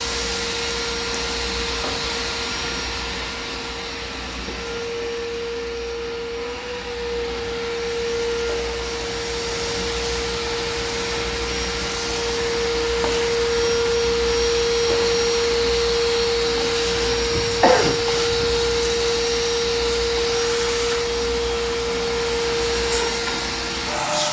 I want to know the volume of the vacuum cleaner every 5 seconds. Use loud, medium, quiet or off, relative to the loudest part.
medium, medium, loud, loud, loud.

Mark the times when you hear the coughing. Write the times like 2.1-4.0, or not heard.
17.3-18.6.